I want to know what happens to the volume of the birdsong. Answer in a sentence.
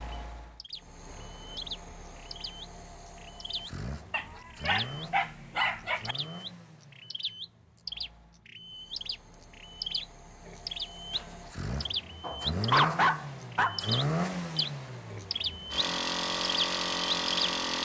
The loudness of the birdsong goes up.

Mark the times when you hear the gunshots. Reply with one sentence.
You can't hear the gunshots here.